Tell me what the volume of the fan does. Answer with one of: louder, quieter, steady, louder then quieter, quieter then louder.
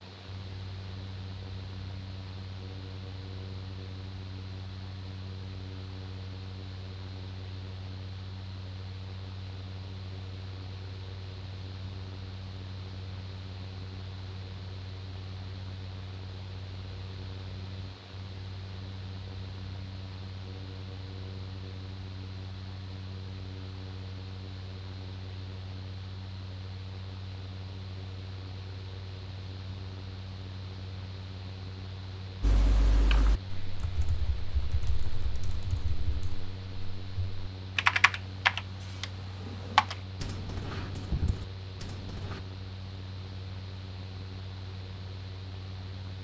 steady.